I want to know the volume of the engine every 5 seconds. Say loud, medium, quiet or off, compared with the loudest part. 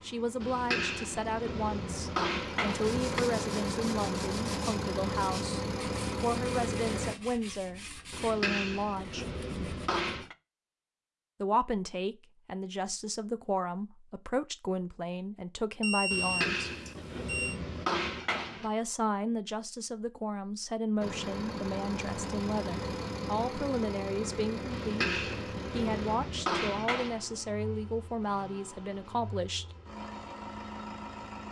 loud, loud, off, off, loud, medium, medium.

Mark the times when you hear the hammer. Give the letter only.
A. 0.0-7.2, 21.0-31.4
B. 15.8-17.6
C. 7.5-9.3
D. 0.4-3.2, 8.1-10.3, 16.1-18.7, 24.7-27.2
D.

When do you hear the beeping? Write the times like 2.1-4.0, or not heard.
15.8-17.6.